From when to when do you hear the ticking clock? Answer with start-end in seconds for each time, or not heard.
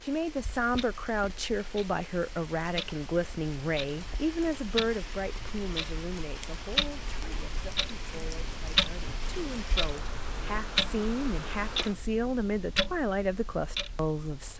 0.0-14.5.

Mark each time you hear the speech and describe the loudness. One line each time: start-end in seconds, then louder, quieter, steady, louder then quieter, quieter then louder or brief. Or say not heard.
0.0-14.5 quieter then louder.